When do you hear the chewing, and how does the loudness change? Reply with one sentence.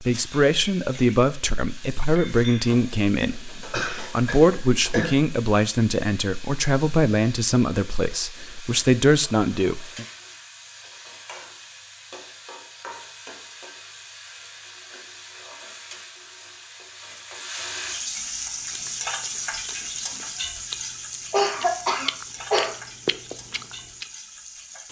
You can hear the chewing from 18.2 to 24.1 s, getting louder.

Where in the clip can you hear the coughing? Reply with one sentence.
The coughing can be heard from 3.2 to 5.2 s and from 21.3 to 22.7 s.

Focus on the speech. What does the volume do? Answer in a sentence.
The volume of the speech stays about the same.